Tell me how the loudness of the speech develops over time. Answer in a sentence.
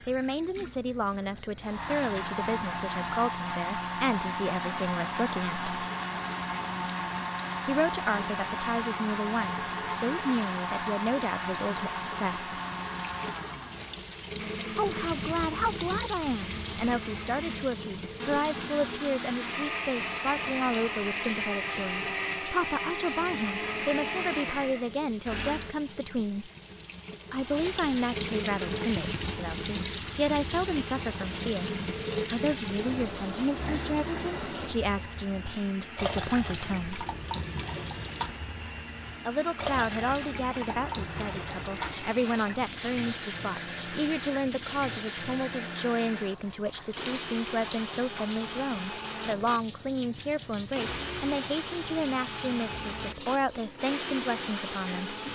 The volume of the speech stays about the same.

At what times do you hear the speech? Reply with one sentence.
You can hear the speech from 0.1 to 5.8 s, from 7.7 to 12.5 s, from 14.8 to 26.5 s, from 27.3 to 37.0 s and from 39.2 to 55.2 s.